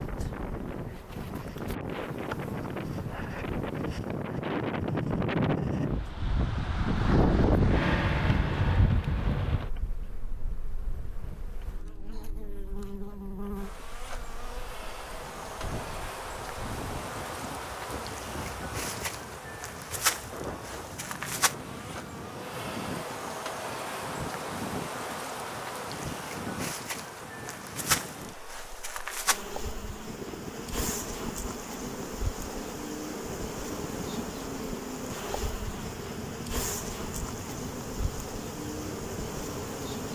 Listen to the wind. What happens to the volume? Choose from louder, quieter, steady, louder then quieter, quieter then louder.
quieter.